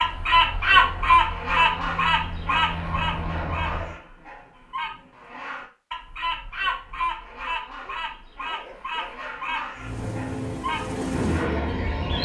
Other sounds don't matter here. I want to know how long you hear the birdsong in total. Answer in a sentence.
The birdsong can be heard for 12 seconds in total.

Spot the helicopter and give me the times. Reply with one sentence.
The helicopter can be heard from 0.0 to 4.0 s and from 9.8 to 12.2 s.